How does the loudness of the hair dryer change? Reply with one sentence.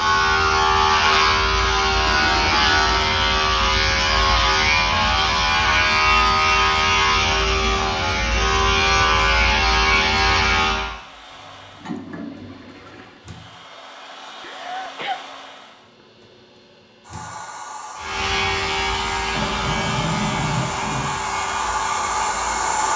The loudness of the hair dryer goes up.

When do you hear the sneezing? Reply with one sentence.
You can hear the sneezing from 14.4 to 15.2 s.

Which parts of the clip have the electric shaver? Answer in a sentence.
You can hear the electric shaver from 0.0 to 10.9 s and from 17.9 to 22.7 s.